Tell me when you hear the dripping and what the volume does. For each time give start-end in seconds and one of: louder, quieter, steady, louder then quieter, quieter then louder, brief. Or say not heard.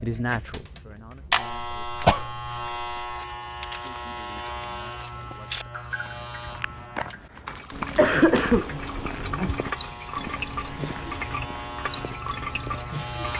5.6-13.3 louder.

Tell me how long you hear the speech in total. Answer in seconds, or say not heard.
4 s.